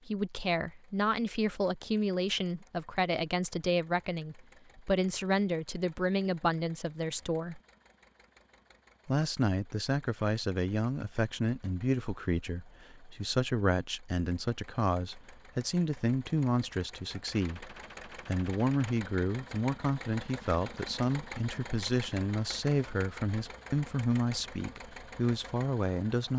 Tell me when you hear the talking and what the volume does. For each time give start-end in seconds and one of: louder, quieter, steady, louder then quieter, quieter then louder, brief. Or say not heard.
0.1-7.6 steady
9.1-26.3 steady.